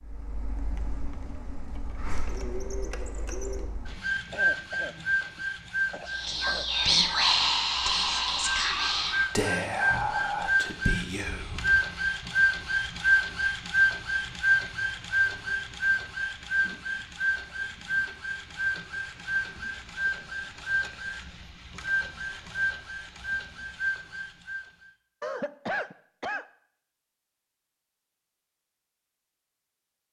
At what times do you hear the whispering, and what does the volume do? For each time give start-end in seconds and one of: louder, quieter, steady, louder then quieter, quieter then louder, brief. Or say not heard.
6.0-11.9 quieter.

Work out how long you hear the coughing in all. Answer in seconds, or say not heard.
4 s.